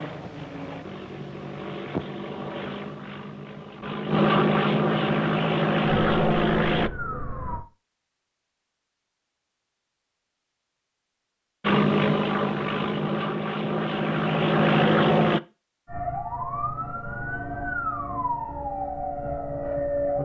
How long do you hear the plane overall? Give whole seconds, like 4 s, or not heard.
11 s.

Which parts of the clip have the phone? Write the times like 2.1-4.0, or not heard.
not heard.